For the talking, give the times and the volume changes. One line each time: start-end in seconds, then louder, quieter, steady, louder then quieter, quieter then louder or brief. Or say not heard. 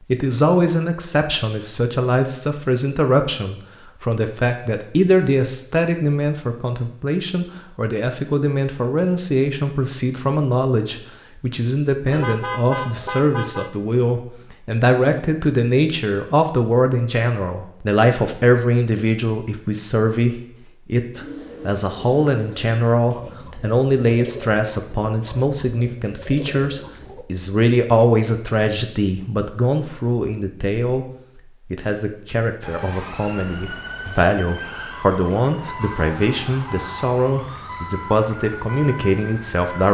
0.1-39.9 steady.